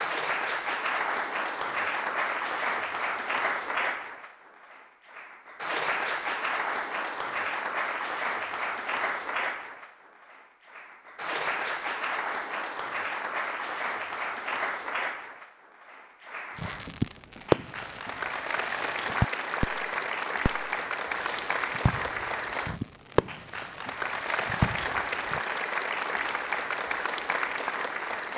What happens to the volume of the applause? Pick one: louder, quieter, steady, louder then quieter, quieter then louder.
steady.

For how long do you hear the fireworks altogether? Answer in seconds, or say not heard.
8 s.